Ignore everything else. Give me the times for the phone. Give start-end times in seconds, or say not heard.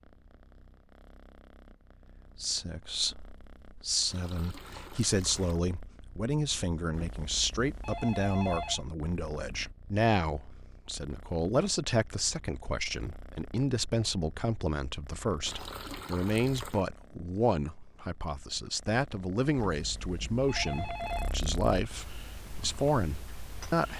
6.9-8.8, 19.6-21.3.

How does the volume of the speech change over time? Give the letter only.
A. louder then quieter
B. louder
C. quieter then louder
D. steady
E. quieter
D.